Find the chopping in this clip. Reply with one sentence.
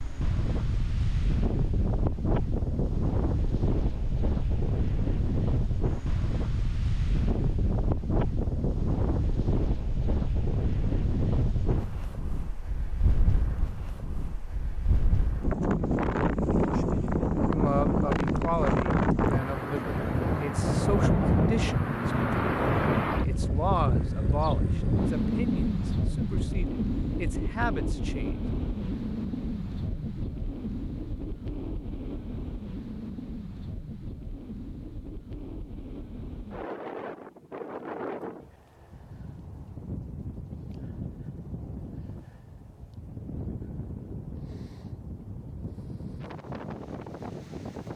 You can't hear the chopping here.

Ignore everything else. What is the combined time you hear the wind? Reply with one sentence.
The wind can be heard for 48 seconds in total.